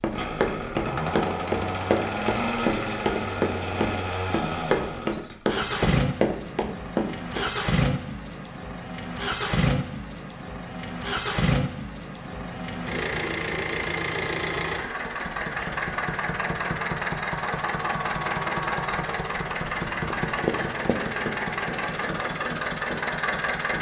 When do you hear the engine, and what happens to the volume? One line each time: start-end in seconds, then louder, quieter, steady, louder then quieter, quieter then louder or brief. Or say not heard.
0.1-23.7 steady.